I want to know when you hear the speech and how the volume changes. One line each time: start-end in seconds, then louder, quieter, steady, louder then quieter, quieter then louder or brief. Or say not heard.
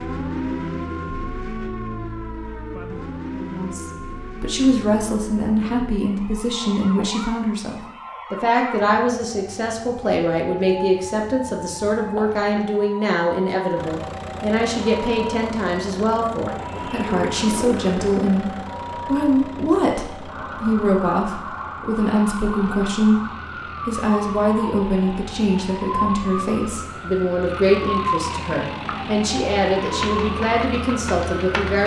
3.4-31.8 steady.